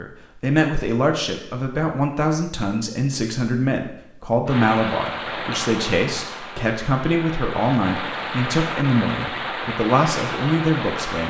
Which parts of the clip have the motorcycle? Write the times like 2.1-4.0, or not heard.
not heard.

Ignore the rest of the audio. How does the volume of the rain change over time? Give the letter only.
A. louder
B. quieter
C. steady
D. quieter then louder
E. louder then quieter
D.